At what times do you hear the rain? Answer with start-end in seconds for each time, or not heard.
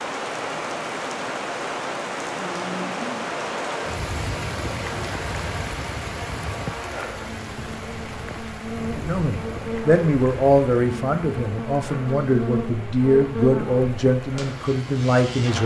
0.0-15.6.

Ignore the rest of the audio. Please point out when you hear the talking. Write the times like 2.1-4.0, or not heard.
8.8-15.6.